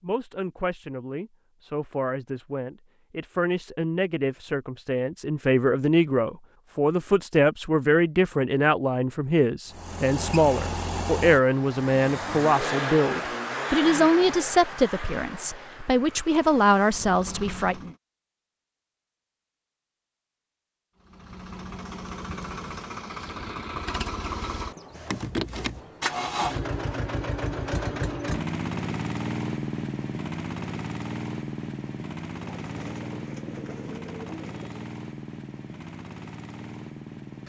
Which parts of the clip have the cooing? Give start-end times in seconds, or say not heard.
32.4-34.9.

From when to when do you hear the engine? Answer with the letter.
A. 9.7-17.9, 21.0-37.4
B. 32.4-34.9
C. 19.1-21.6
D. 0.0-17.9
A.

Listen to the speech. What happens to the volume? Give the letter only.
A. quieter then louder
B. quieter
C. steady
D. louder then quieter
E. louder
E.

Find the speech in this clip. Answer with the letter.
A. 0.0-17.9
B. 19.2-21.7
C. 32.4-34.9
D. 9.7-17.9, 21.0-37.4
A.